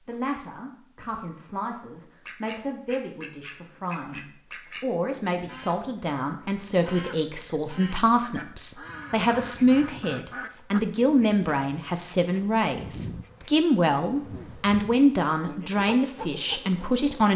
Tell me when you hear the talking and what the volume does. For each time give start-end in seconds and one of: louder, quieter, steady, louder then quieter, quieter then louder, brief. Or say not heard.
0.0-17.3 louder.